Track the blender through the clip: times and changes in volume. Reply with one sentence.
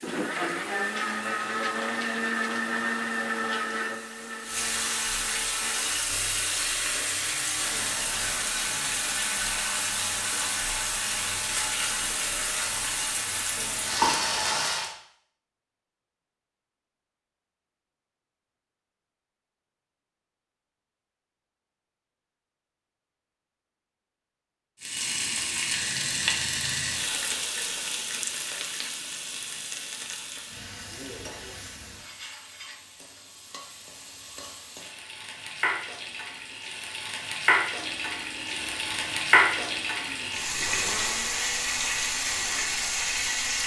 The blender can be heard from 0.0 to 14.7 s, getting quieter; and from 37.8 to 43.6 s, getting louder then quieter.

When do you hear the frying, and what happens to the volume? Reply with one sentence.
You can hear the frying from 0.0 to 14.9 s, getting louder; and from 24.8 to 43.6 s, getting quieter then louder.